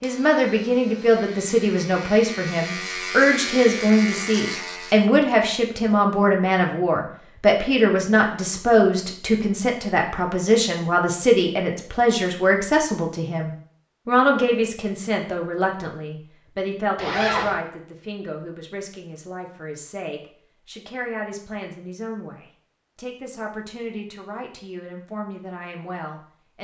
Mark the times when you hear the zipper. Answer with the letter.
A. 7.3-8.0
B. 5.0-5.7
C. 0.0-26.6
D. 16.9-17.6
D.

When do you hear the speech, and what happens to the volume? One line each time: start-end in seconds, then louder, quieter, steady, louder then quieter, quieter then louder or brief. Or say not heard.
0.0-26.6 quieter.